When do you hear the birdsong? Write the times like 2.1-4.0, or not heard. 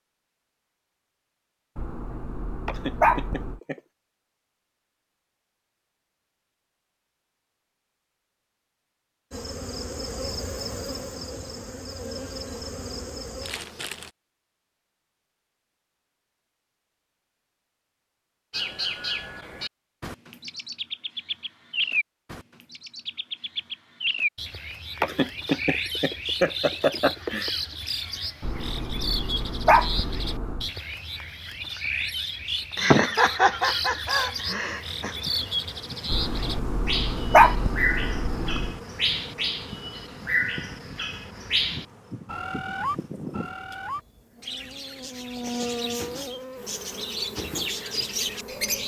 18.5-48.8.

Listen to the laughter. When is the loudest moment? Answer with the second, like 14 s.
33 s.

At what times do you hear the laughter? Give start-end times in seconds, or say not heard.
2.6-3.8, 25.0-27.5, 32.8-35.1.